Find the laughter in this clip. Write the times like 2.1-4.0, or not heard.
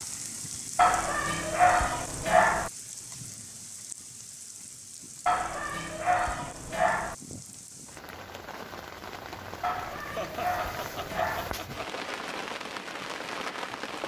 10.2-12.1.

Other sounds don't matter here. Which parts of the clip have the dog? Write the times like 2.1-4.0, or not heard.
0.8-2.7, 5.2-7.2, 9.6-11.6.